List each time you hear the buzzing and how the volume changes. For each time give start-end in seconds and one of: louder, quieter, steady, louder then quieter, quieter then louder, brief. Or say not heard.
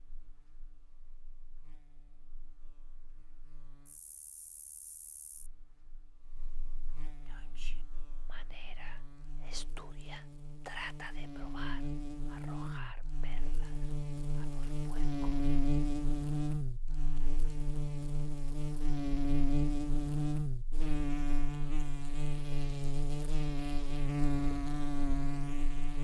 0.0-25.9 louder.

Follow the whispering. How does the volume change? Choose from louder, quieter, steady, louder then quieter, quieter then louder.
louder then quieter.